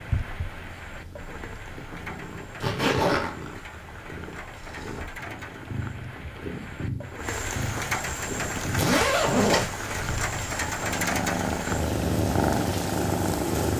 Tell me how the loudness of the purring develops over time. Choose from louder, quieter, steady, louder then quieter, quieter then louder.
louder.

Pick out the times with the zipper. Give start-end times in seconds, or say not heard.
2.6-3.3, 8.8-9.7.